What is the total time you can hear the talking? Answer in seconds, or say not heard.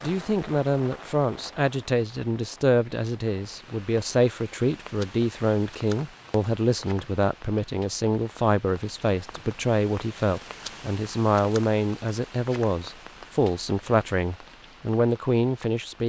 16 s.